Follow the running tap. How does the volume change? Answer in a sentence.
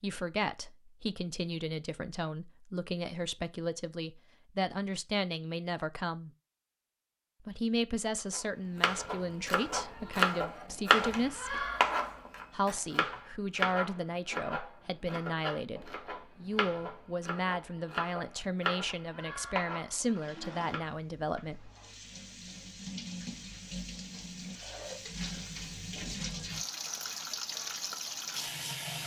The loudness of the running tap goes up.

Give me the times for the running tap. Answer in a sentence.
You can hear the running tap from 20.1 to 29.0 s.